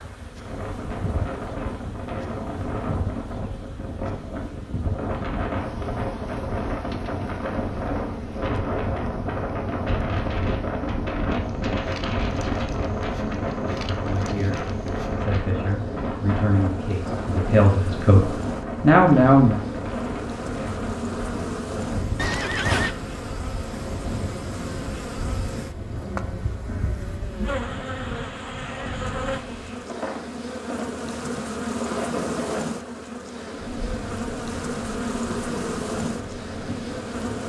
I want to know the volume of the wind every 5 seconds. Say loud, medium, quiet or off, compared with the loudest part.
medium, loud, loud, loud, medium, medium, medium, medium.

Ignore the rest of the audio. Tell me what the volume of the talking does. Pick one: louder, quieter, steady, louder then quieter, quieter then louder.
louder.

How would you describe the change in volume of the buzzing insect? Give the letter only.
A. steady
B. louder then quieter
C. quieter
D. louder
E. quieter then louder
D.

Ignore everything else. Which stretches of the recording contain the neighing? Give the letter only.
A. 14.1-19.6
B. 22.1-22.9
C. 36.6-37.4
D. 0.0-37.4
B.